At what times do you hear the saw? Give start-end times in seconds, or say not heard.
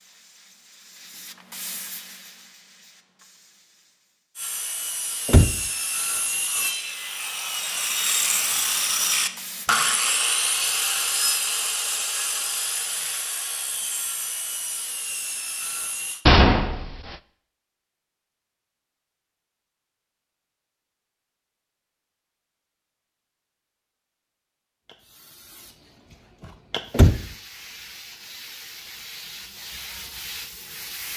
4.3-16.2.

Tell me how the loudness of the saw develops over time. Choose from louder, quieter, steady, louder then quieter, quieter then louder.
louder then quieter.